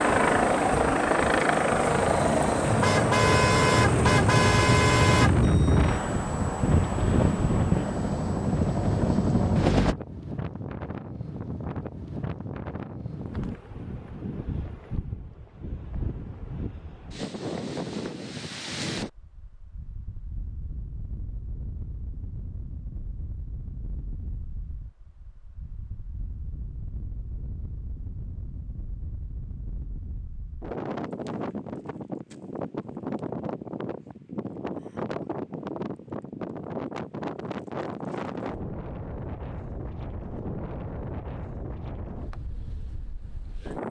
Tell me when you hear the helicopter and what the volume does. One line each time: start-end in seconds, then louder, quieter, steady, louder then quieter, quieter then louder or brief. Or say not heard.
0.0-9.9 quieter then louder.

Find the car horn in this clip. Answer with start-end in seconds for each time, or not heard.
2.6-5.3.